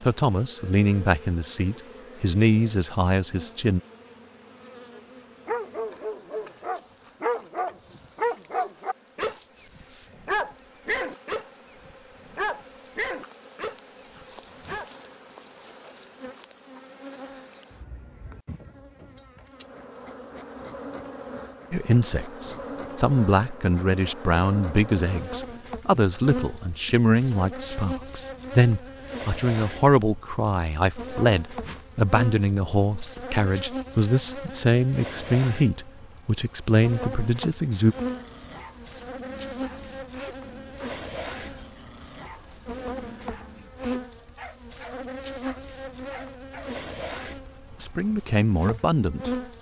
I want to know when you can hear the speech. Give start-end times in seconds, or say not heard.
0.0-3.8, 21.7-38.0, 47.8-49.5.